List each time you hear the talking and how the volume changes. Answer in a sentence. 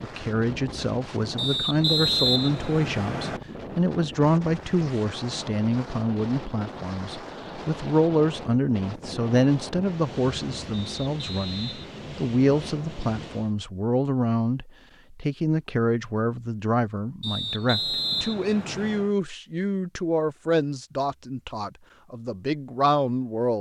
The talking can be heard from 0.0 to 23.5 s, at a steady volume.